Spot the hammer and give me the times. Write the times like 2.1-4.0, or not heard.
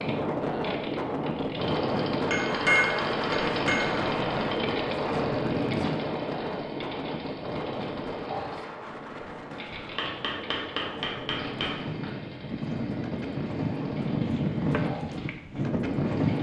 2.3-4.0, 9.9-11.8.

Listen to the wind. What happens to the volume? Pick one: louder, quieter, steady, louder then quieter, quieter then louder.
quieter then louder.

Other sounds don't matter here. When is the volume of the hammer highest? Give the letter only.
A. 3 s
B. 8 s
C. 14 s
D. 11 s
A.